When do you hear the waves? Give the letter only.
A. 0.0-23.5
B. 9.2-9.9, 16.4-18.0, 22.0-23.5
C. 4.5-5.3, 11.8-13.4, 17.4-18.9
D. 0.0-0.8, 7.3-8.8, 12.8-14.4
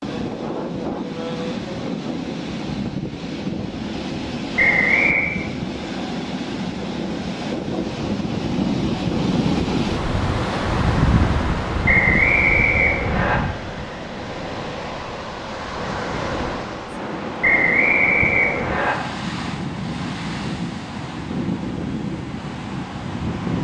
A.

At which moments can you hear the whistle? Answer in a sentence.
The whistle can be heard from 4.5 to 5.3 s, from 11.8 to 13.4 s and from 17.4 to 18.9 s.